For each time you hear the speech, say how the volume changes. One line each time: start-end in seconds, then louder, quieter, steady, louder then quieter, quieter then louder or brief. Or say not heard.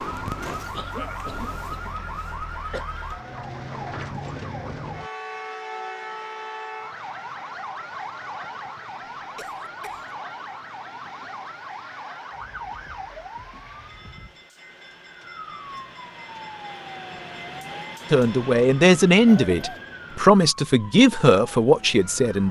18.1-22.4 steady.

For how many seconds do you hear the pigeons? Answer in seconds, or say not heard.
not heard.